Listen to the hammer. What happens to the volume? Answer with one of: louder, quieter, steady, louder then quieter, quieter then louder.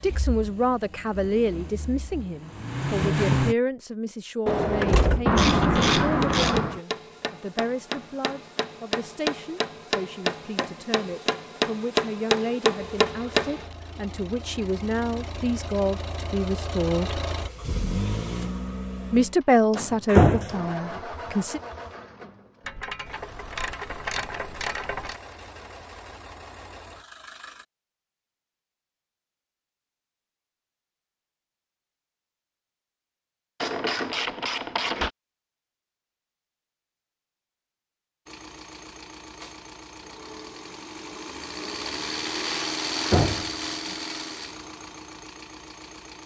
louder.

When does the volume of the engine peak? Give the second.
3 s.